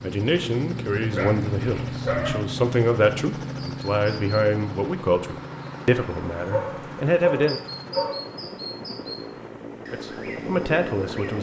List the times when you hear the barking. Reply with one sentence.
You can hear the barking from 1.1 to 2.4 s and from 6.5 to 8.2 s.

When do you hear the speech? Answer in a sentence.
The speech can be heard from 0.0 to 7.6 s and from 9.9 to 11.3 s.